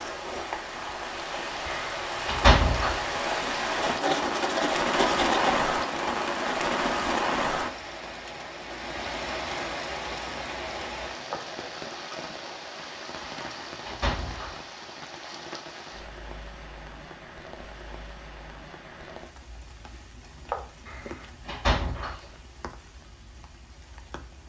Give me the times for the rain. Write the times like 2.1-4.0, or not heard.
0.0-24.4.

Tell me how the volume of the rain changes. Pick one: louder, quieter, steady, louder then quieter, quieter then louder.
quieter.